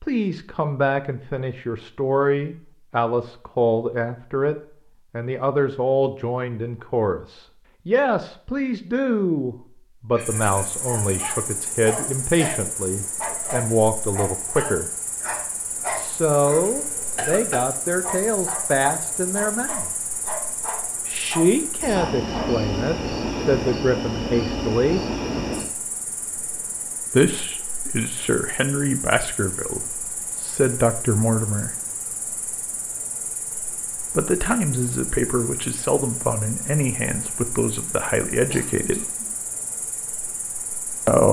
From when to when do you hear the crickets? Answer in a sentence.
The crickets can be heard from 10.2 to 41.2 s.